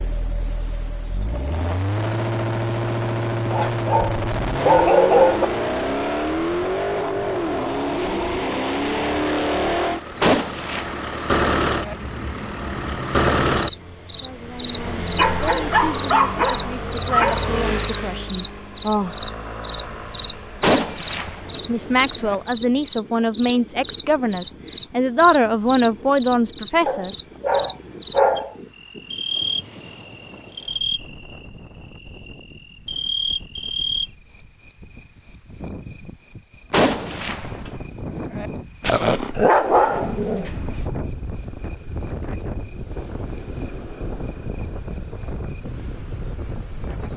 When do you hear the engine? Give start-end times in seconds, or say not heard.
0.0-22.6.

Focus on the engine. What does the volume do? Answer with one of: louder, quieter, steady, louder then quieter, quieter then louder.
quieter.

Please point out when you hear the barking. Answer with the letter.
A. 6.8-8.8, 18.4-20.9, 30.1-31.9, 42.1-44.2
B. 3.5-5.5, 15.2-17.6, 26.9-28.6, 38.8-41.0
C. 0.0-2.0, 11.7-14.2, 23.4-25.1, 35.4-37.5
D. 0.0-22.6
B.